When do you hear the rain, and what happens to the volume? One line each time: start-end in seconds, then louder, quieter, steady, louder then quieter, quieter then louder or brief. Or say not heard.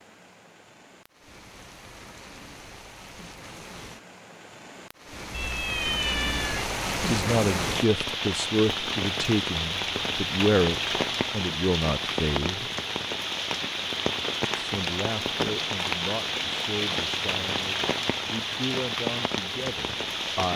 0.0-20.5 louder.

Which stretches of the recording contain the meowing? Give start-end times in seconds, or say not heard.
5.3-6.7.